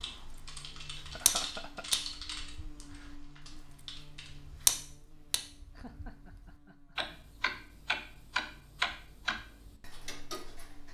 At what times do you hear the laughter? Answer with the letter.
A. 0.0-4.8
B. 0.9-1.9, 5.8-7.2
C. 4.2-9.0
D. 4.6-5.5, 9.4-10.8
B.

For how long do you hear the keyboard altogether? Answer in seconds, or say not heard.
5 s.